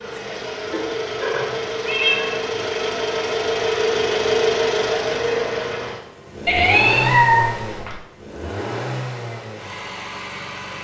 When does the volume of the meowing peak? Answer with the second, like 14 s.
7 s.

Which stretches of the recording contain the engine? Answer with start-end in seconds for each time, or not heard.
0.0-10.7.